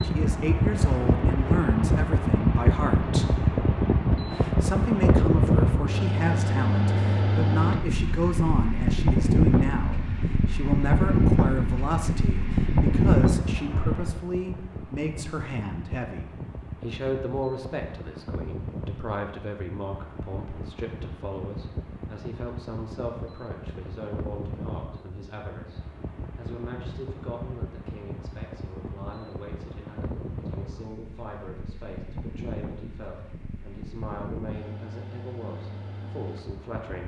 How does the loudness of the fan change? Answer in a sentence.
The loudness of the fan goes down.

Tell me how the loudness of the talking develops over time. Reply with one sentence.
The volume of the talking goes down.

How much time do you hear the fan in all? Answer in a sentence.
You can hear the fan for 37 seconds altogether.